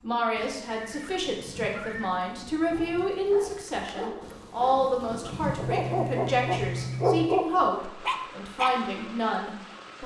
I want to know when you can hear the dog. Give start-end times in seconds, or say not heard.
2.7-8.8.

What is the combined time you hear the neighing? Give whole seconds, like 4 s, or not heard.
3 s.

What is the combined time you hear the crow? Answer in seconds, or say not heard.
not heard.